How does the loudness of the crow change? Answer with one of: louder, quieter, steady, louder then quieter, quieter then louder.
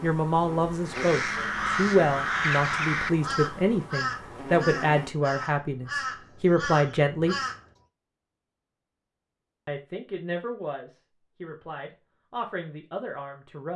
quieter.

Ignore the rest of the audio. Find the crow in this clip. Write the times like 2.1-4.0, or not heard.
0.8-7.6.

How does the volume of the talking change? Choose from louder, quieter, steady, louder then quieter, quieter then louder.
quieter.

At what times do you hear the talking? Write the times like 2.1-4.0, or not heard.
0.0-7.3, 9.7-13.7.